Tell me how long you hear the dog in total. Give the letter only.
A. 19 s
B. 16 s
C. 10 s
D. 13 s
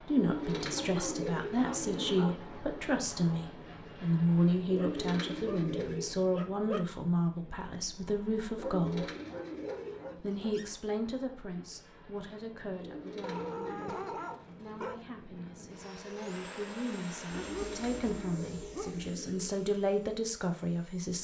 C.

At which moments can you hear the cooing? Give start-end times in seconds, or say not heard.
0.1-2.4, 4.7-6.2, 8.6-10.2, 12.8-14.3, 17.3-19.6.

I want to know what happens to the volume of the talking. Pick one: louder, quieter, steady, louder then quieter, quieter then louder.
quieter then louder.